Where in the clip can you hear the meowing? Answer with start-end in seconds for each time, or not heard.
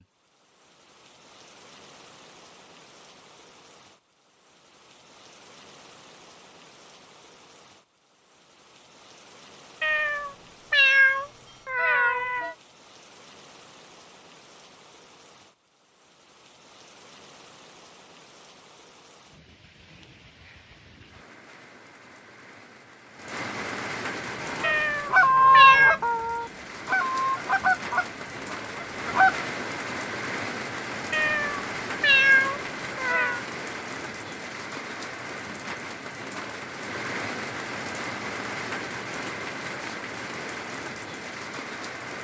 9.8-12.6, 24.6-26.0, 31.1-33.4.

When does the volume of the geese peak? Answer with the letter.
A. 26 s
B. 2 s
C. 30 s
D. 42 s
A.